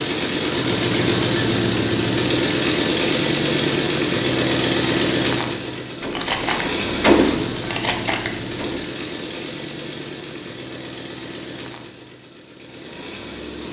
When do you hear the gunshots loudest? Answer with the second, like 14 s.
7 s.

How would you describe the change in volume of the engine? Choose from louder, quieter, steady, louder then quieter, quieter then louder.
quieter.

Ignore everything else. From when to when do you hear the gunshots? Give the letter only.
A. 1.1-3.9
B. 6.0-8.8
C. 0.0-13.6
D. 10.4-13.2
B.